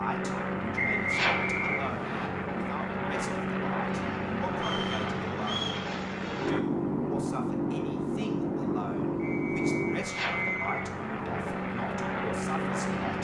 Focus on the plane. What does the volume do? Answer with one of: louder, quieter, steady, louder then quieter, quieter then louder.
steady.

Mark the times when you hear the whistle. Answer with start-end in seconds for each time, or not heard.
0.8-2.3, 4.5-5.8, 9.2-10.8.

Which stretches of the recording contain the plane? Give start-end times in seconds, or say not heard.
0.0-13.1.